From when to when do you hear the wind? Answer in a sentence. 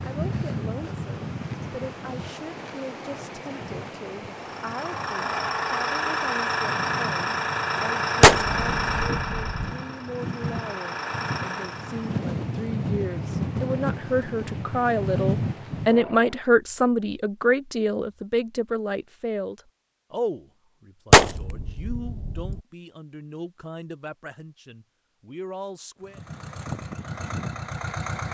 The wind can be heard from 0.0 to 16.4 s.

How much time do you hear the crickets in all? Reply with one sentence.
You can't hear the crickets here.